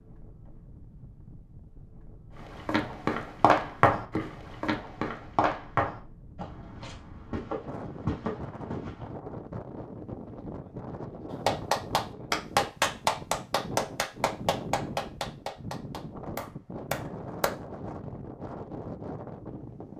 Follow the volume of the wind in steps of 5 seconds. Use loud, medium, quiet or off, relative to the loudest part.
quiet, loud, loud, loud.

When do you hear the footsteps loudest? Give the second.
4 s.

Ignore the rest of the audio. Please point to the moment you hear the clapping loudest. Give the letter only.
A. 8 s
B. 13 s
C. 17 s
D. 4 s
B.